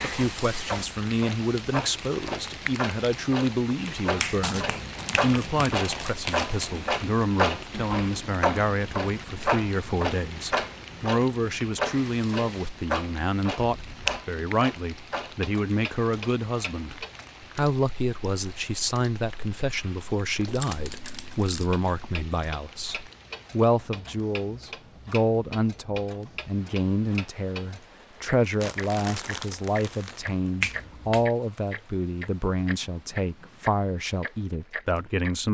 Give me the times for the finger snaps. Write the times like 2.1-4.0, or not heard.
4.2-5.8, 13.7-14.2, 30.6-31.3.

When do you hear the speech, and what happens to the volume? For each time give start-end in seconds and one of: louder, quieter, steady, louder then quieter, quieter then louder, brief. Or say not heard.
0.0-35.4 steady.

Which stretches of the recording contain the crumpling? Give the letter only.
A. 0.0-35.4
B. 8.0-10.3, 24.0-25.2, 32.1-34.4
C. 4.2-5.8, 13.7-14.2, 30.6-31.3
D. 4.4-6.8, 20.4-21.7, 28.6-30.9
D.